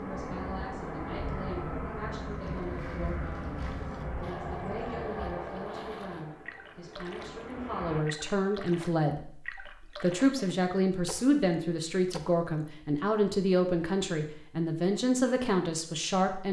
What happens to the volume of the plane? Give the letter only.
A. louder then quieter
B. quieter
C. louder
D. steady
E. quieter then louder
B.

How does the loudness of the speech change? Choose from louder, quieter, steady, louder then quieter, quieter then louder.
louder.